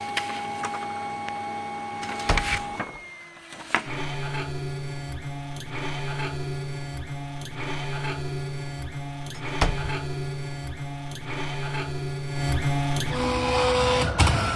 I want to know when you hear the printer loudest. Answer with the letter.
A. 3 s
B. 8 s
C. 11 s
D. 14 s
D.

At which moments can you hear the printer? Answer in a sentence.
The printer can be heard from 0.0 to 14.5 s.